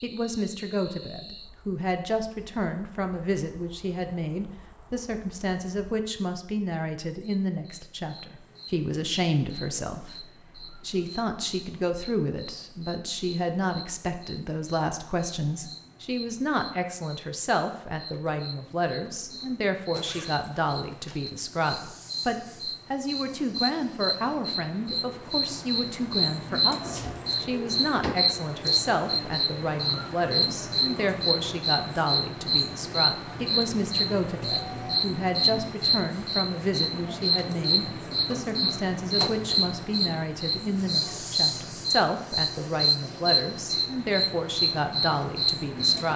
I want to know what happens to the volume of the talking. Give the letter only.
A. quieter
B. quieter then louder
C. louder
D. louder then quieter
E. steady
E.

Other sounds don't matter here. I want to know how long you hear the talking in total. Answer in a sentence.
You can hear the talking for 46 seconds altogether.